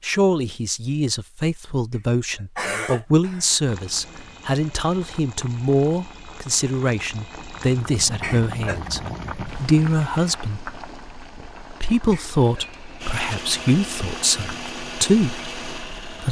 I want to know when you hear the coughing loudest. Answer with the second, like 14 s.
3 s.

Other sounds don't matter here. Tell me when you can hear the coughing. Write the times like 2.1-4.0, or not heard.
2.4-3.5, 8.2-8.9, 12.1-12.7.